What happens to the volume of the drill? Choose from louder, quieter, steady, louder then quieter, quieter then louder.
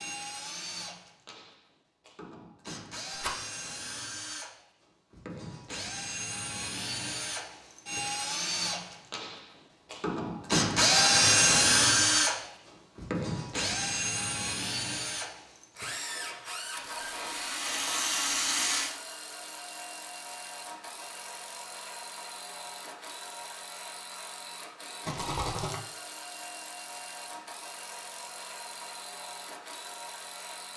louder then quieter.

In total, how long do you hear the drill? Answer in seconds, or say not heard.
31 s.